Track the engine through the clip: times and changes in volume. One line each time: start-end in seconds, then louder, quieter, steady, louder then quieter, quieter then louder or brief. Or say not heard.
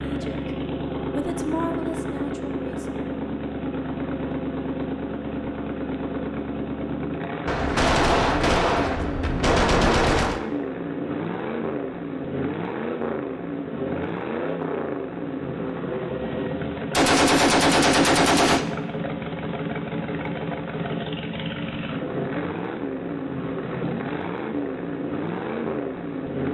0.0-26.4 steady.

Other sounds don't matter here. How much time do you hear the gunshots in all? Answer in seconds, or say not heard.
5 s.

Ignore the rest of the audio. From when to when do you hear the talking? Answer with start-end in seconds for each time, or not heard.
0.0-3.0.